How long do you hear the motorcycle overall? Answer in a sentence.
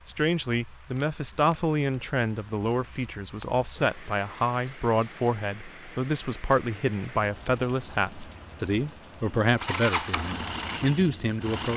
The motorcycle can be heard for 2 seconds in total.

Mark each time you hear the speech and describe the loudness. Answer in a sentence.
The speech can be heard from 0.1 to 11.7 s, at a steady volume.